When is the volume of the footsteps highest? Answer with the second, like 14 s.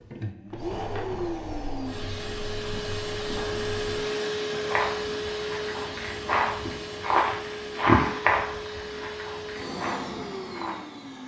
8 s.